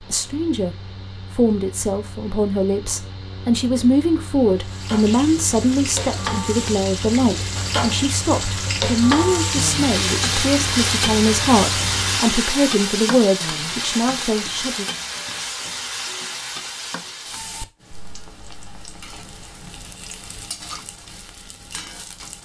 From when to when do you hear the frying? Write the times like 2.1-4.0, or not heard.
4.6-22.4.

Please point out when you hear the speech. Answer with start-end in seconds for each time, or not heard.
0.0-14.8.